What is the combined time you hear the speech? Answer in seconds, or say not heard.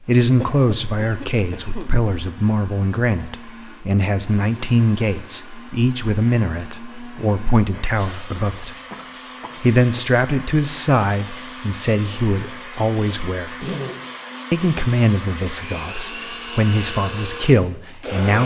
17 s.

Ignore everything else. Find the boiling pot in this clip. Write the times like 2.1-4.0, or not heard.
not heard.